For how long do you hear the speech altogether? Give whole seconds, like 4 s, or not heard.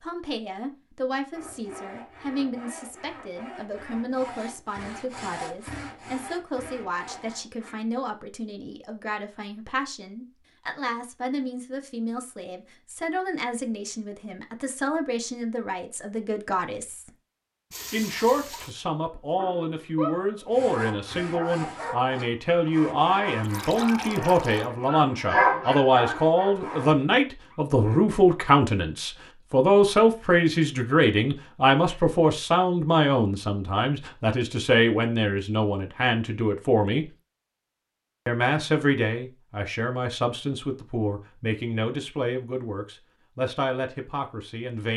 43 s.